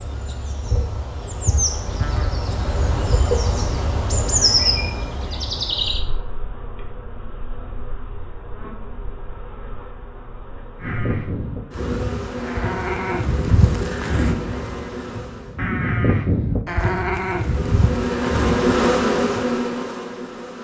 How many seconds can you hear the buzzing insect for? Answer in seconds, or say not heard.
19 s.